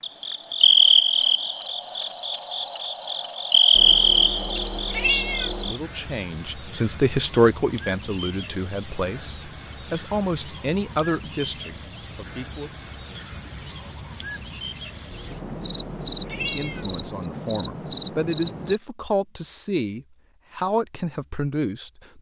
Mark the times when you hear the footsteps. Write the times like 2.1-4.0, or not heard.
not heard.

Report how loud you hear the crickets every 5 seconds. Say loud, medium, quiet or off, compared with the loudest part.
loud, loud, loud, loud, off.